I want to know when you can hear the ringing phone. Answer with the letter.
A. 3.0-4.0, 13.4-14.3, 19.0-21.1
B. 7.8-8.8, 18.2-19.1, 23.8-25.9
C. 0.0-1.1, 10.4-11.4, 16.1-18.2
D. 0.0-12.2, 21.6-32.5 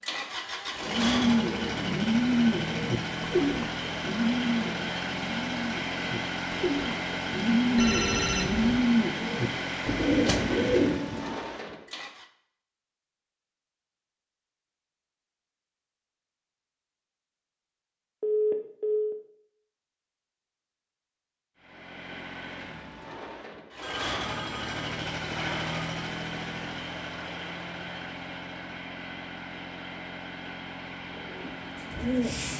B.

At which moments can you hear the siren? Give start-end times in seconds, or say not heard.
not heard.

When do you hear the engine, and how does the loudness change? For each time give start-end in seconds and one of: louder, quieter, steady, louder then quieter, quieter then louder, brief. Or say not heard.
0.0-12.2 steady
21.6-32.5 louder then quieter.